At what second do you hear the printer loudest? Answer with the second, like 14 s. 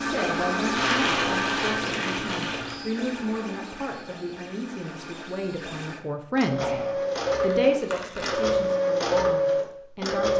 9 s.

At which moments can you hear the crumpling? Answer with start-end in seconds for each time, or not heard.
0.8-2.8, 6.6-8.6.